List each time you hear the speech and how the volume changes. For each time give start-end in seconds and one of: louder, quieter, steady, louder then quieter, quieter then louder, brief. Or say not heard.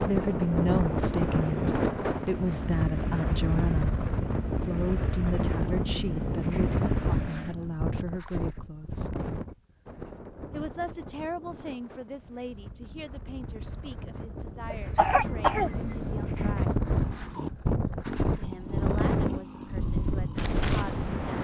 0.0-9.2 quieter
10.5-16.8 quieter
18.2-21.1 brief.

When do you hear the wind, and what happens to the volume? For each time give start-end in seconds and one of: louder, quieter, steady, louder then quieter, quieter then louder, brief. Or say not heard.
0.0-21.3 quieter then louder.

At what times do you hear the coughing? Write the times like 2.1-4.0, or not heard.
14.7-15.9.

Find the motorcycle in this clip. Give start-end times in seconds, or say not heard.
0.1-7.8, 15.6-21.3.